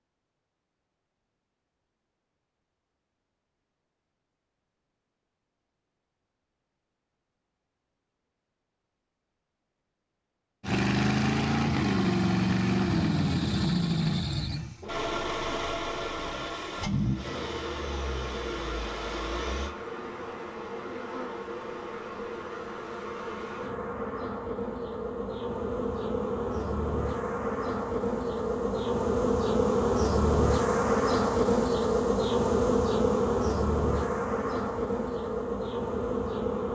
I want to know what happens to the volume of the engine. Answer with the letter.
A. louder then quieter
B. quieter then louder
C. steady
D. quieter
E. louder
D.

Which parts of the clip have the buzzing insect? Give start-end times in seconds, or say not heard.
17.1-36.6.